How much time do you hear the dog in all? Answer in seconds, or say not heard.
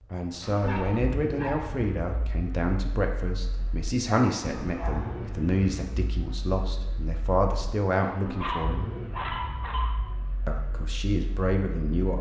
4 s.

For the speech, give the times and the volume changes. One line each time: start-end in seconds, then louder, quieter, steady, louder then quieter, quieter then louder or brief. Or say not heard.
0.1-8.9 steady
10.4-12.1 brief.